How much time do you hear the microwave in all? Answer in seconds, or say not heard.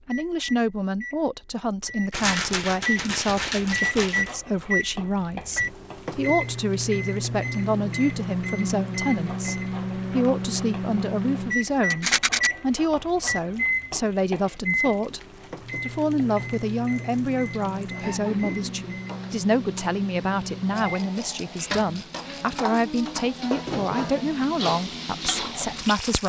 22 s.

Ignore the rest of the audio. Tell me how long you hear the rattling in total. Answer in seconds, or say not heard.
5 s.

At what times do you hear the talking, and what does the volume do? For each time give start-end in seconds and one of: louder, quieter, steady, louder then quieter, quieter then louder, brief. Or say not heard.
0.1-26.2 steady.